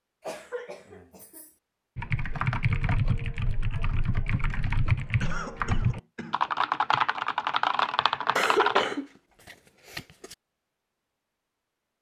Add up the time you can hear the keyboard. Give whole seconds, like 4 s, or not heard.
7 s.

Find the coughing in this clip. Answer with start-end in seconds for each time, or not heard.
0.2-1.6, 5.2-6.4, 8.3-10.3.